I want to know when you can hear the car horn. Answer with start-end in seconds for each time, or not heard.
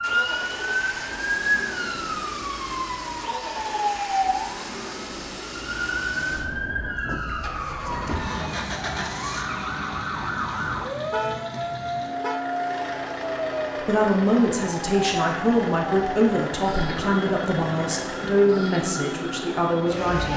11.1-12.4.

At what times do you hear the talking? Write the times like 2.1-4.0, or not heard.
13.8-20.3.